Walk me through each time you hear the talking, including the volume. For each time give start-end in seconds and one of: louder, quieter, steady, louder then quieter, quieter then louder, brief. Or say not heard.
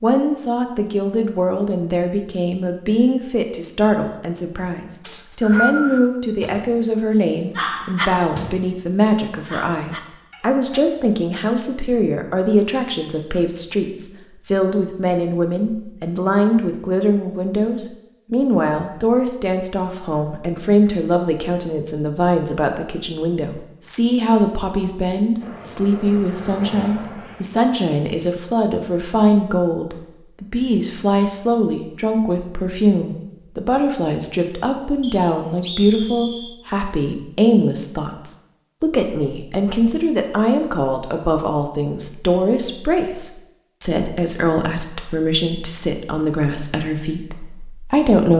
0.0-48.3 steady.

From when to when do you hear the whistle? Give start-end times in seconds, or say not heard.
5.0-6.0, 35.0-36.5.